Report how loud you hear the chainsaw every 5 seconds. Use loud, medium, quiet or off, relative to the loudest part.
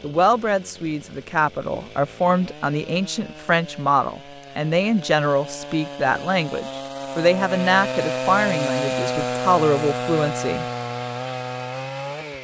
quiet, loud, loud.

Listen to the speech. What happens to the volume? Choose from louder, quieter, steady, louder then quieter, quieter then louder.
steady.